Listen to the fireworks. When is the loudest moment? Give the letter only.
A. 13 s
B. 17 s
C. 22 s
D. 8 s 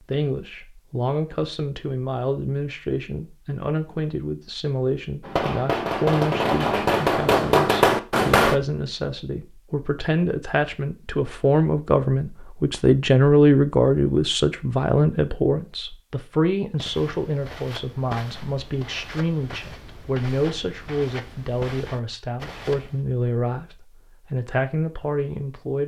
D.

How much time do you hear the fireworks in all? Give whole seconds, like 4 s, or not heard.
3 s.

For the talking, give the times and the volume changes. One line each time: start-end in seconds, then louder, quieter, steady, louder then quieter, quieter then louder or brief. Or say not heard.
0.1-25.8 louder then quieter.